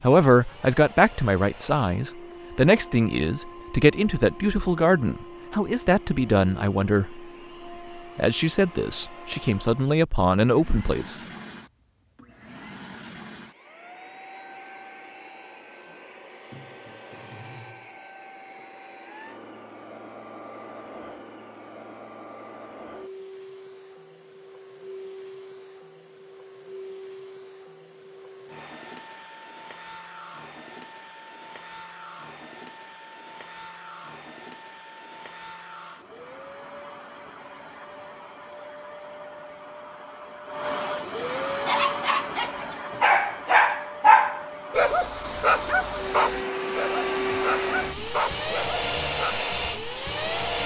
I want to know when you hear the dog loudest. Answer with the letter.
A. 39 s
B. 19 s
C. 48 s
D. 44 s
D.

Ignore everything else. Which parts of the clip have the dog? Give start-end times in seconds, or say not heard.
41.6-49.4.